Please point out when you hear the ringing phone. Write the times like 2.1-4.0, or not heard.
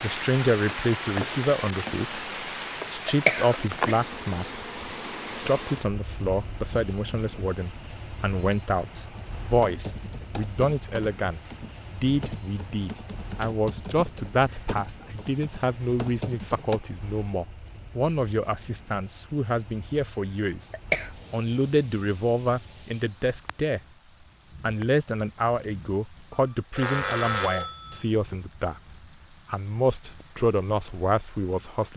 26.3-28.1.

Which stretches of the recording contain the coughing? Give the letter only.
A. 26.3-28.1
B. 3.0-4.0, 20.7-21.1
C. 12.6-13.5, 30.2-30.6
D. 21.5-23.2
B.